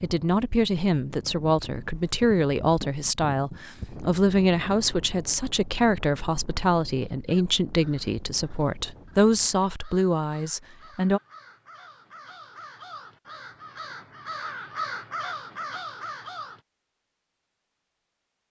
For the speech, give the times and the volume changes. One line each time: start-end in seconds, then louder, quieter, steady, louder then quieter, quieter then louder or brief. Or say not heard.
0.0-11.2 steady.